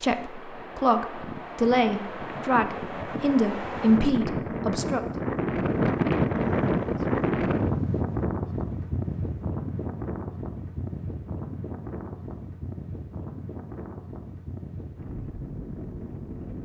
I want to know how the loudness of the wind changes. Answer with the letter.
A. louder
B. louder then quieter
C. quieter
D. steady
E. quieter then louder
B.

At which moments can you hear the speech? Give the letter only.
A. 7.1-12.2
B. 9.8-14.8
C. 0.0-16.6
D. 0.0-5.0
D.